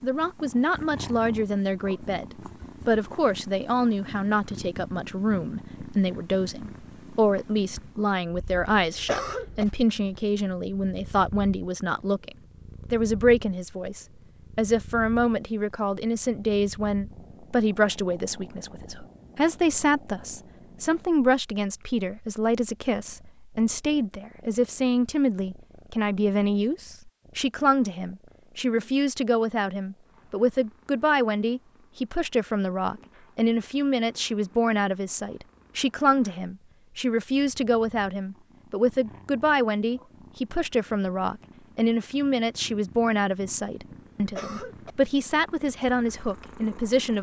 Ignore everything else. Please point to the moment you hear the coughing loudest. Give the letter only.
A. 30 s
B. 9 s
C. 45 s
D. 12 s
B.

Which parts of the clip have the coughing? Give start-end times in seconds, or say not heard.
8.8-9.7, 43.9-44.9.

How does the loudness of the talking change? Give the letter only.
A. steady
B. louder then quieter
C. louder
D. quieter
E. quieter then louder
A.